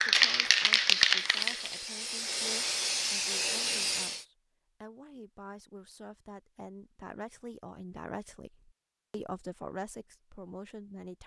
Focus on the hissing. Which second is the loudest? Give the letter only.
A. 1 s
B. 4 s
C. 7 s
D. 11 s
A.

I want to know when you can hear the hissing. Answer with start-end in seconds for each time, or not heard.
0.0-4.2.